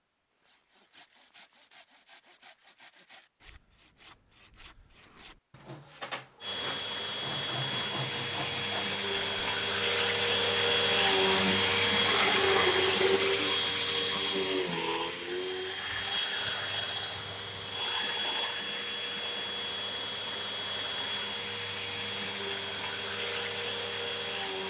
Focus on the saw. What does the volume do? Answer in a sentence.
The loudness of the saw goes up.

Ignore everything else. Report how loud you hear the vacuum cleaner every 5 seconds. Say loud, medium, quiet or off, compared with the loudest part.
off, medium, loud, medium, medium.